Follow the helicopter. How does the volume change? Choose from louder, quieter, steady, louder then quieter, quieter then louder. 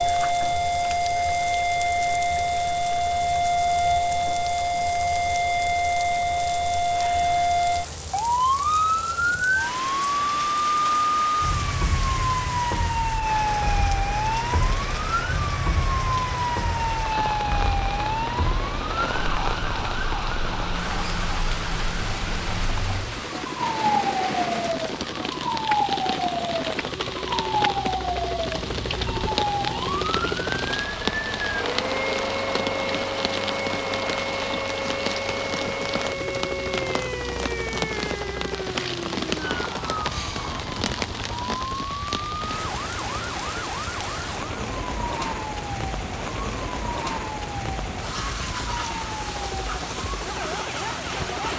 louder then quieter.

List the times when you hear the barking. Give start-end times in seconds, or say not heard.
not heard.